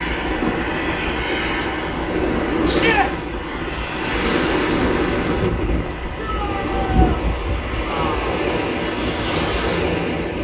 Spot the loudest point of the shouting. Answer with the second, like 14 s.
3 s.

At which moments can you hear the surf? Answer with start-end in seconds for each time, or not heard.
0.0-10.3.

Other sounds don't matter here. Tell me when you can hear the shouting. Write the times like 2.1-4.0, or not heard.
2.6-3.1, 6.2-7.2.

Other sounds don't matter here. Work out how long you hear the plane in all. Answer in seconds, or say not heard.
10 s.